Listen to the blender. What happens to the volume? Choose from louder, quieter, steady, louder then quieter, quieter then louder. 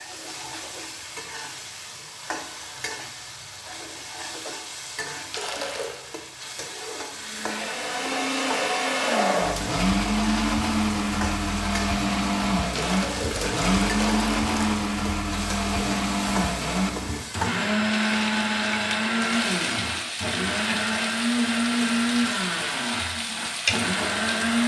steady.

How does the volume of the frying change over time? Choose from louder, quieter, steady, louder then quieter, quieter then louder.
louder.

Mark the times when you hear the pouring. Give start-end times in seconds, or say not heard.
5.3-6.0, 12.8-14.8.